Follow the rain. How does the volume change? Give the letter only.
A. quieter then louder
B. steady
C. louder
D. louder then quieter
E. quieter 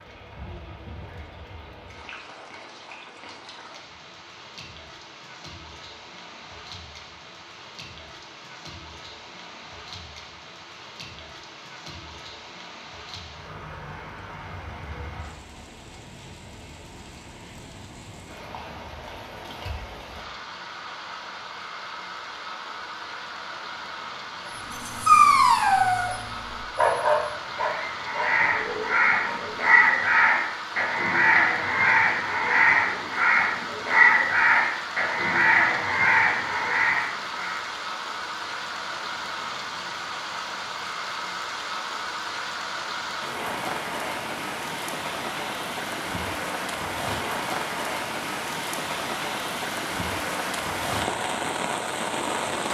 C.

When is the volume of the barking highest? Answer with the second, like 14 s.
25 s.